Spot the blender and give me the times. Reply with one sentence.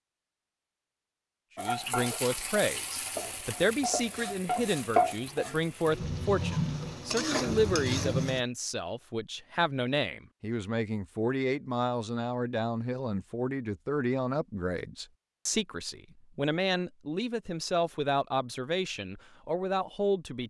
The blender can't be heard in this clip.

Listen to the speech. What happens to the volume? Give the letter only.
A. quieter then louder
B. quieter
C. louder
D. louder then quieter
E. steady
E.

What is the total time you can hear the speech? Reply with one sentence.
The speech can be heard for 19 seconds in total.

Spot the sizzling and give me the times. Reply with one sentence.
You can hear the sizzling from 1.6 to 8.4 s.